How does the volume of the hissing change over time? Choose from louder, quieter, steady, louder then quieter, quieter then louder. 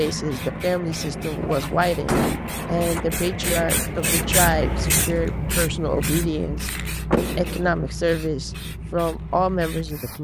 louder then quieter.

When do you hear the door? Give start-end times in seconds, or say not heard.
1.1-3.0, 7.1-7.9.